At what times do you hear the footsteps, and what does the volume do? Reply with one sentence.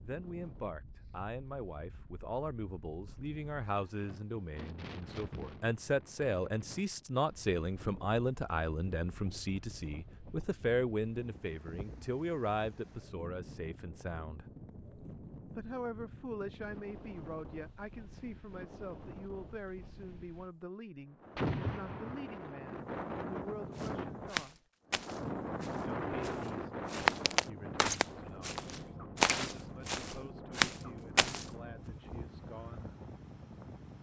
The footsteps can be heard from 23.8 to 31.4 s, getting quieter then louder.